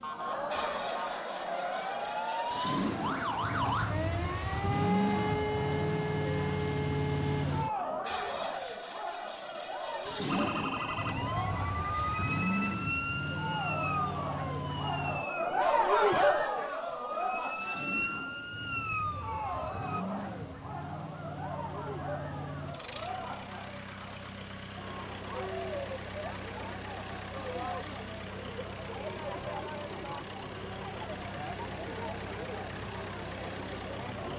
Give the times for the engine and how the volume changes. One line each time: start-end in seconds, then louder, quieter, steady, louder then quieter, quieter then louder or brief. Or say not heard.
0.0-34.3 quieter.